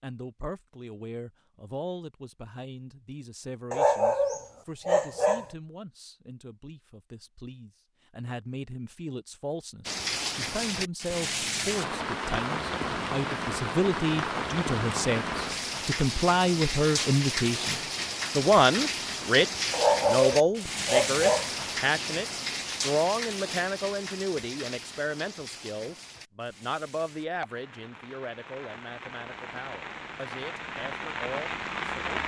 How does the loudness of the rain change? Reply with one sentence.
The volume of the rain goes down.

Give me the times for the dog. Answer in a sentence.
The dog can be heard from 3.7 to 5.5 s and from 19.7 to 21.5 s.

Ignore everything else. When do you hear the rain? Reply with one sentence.
You can hear the rain from 9.8 to 32.2 s.